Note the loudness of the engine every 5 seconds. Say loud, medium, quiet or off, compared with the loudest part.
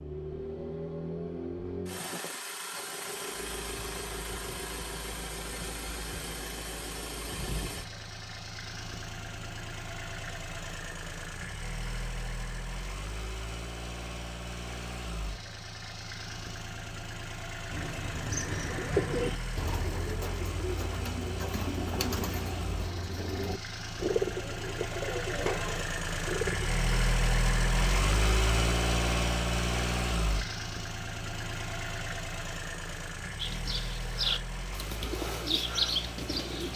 medium, medium, medium, medium, medium, loud, medium, medium.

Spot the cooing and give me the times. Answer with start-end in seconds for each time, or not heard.
17.7-26.8, 33.4-36.7.